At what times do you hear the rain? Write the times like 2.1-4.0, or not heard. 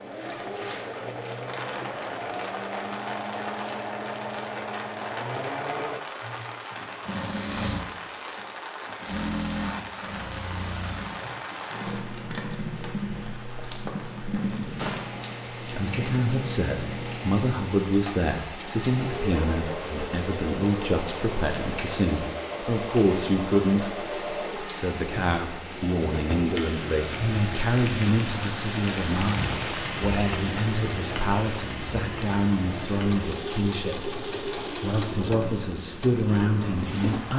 0.0-37.3.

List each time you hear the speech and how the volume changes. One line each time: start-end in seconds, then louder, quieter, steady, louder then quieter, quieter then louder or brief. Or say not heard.
15.7-37.3 steady.